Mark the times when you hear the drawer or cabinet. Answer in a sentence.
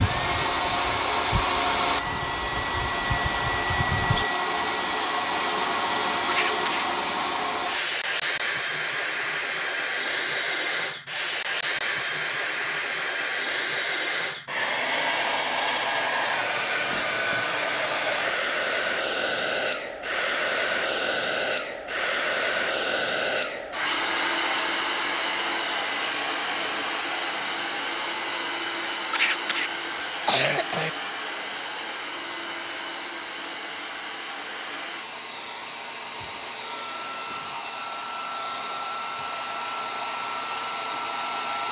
You can't hear the drawer or cabinet here.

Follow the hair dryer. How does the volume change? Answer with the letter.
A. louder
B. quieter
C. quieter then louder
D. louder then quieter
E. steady
B.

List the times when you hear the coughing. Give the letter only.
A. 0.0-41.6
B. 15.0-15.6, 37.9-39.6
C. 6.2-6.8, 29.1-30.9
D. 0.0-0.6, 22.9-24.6
C.